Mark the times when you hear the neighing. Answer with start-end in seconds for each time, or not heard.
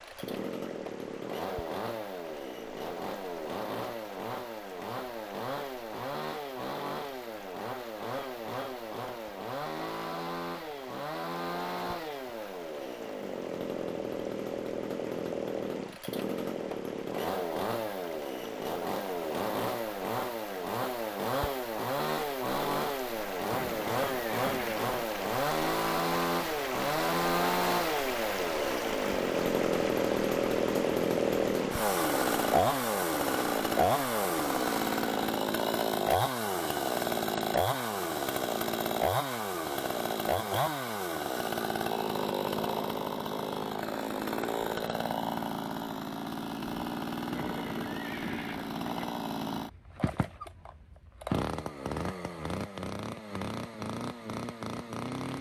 23.5-24.9, 47.3-49.1.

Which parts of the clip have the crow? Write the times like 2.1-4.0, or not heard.
not heard.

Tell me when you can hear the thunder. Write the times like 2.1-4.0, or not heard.
not heard.